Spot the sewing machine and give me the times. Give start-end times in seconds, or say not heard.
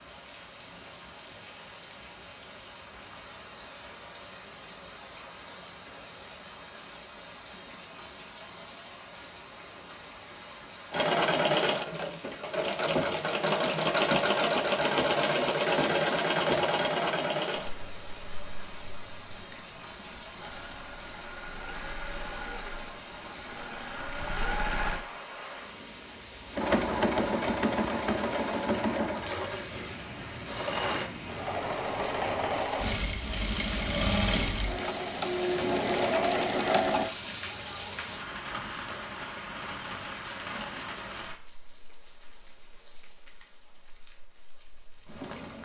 10.9-25.0, 26.6-37.1.